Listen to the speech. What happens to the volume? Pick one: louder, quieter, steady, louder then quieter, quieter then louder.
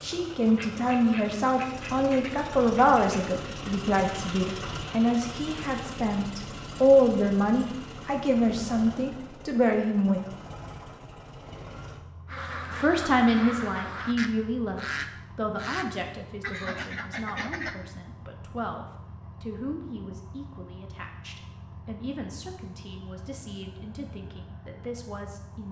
quieter.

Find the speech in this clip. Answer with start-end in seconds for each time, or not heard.
0.0-10.2, 12.7-25.6.